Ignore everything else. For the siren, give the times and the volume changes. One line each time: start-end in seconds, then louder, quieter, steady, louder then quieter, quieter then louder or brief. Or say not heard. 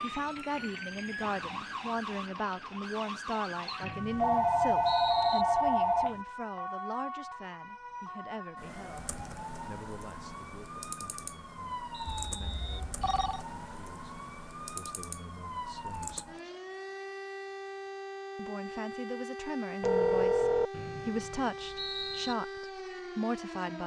0.0-23.8 steady.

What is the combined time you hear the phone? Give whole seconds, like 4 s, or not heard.
4 s.